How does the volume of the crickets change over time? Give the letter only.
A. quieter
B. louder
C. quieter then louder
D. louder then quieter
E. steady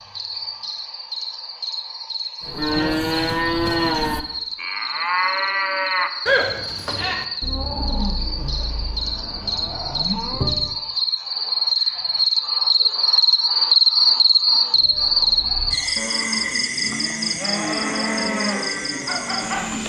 D.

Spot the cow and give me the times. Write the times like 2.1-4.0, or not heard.
2.4-10.8, 14.8-19.8.